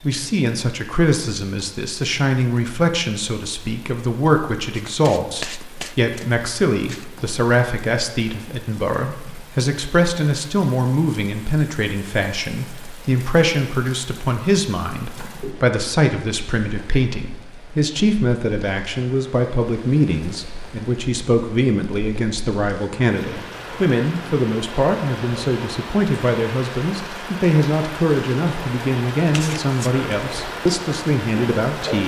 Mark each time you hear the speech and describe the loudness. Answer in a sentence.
You can hear the speech from 0.0 to 32.0 s, at a steady volume.